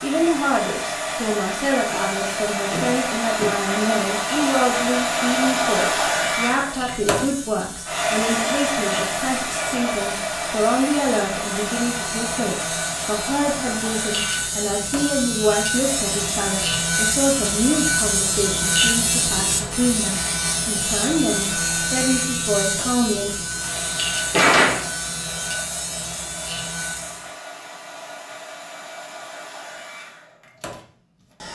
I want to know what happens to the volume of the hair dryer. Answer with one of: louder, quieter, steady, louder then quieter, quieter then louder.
quieter.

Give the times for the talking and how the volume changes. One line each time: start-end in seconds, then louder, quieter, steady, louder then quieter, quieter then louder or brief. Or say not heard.
0.0-23.4 steady.